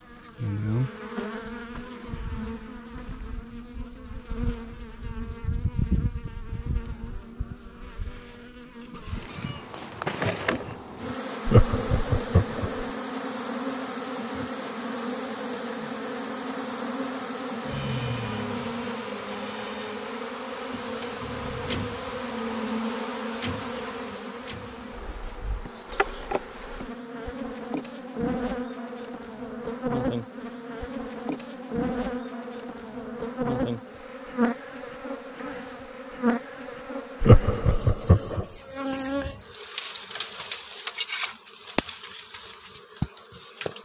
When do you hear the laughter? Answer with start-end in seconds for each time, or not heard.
11.4-12.8, 37.2-38.5.